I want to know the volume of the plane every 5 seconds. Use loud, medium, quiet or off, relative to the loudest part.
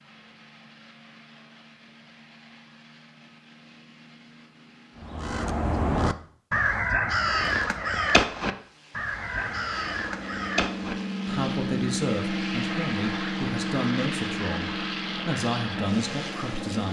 quiet, quiet, loud, loud.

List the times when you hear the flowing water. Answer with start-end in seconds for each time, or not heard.
not heard.